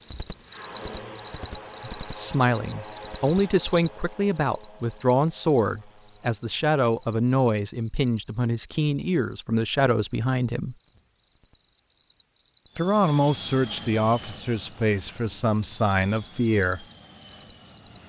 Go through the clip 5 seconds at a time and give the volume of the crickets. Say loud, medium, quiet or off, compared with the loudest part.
loud, quiet, quiet, quiet.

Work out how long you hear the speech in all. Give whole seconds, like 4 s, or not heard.
13 s.